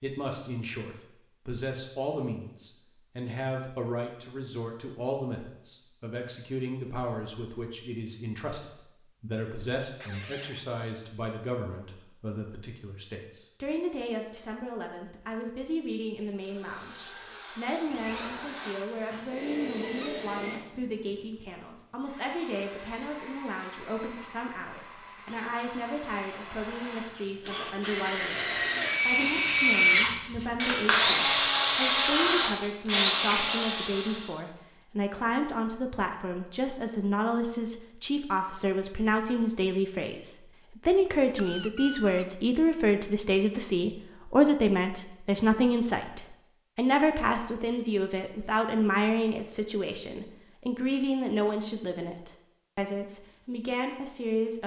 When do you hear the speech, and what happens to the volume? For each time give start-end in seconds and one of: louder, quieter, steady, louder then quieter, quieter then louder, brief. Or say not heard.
0.0-54.6 louder.